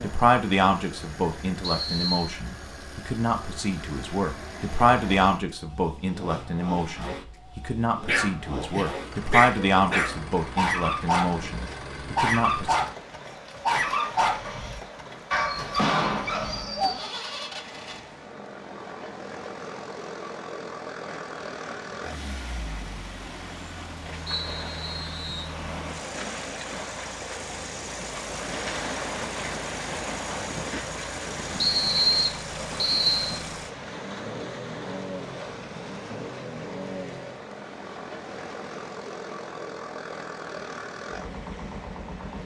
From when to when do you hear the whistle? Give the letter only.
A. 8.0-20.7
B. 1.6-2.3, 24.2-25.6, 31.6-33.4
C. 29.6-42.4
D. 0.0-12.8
B.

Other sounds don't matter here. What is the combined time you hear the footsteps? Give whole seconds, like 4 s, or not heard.
not heard.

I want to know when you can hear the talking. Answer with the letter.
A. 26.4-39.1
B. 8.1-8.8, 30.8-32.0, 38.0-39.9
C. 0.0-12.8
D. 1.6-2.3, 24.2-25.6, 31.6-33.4
C.